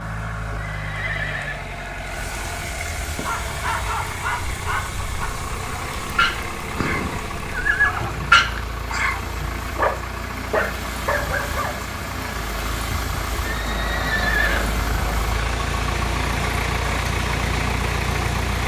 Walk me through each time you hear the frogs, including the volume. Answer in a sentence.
You can't hear the frogs here.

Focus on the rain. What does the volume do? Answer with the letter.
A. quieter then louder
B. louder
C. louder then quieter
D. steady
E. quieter
B.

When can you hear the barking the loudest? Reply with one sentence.
The volume of the barking peaks at 8 seconds.